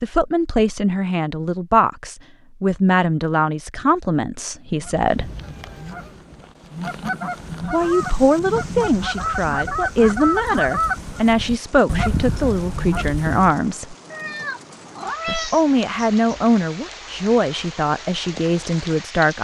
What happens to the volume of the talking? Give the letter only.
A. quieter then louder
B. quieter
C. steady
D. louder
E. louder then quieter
C.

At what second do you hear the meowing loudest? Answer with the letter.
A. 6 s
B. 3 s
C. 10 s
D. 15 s
D.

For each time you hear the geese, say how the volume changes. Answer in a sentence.
You can hear the geese from 4.6 to 13.6 s, getting louder.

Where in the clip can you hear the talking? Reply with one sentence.
You can hear the talking from 0.0 to 5.3 s, from 7.7 to 13.9 s and from 15.2 to 19.3 s.